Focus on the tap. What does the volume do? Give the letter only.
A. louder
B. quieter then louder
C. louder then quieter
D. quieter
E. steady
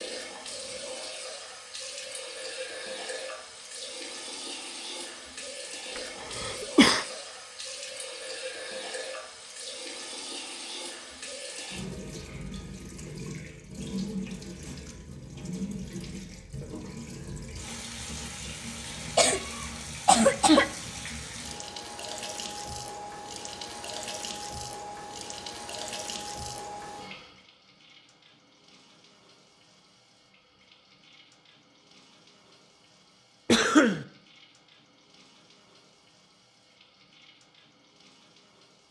D.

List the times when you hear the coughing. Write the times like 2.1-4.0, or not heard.
6.0-7.0, 19.1-20.6, 33.5-34.0.